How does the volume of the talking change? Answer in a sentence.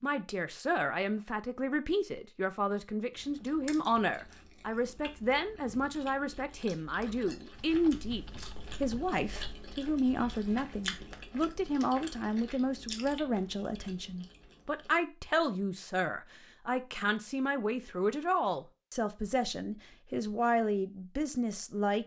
The loudness of the talking stays about the same.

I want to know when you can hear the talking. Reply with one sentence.
The talking can be heard from 0.0 to 22.0 s.